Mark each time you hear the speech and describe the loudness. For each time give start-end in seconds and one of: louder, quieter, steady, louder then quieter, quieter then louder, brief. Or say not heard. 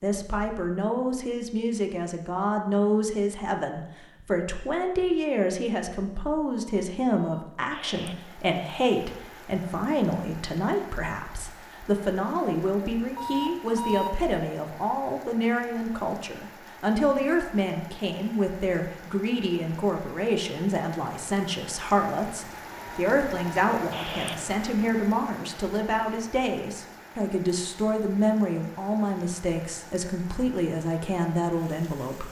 0.0-32.2 steady.